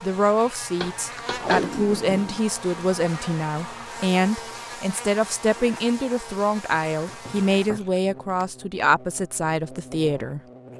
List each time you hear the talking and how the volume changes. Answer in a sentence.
The talking can be heard from 0.0 to 10.4 s, at a steady volume.